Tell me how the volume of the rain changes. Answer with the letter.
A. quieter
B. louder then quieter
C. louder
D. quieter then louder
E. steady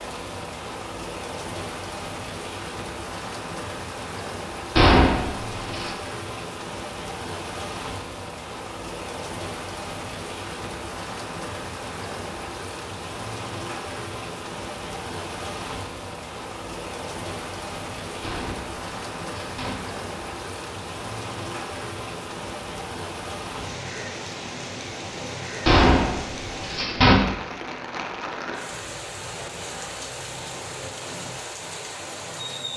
E.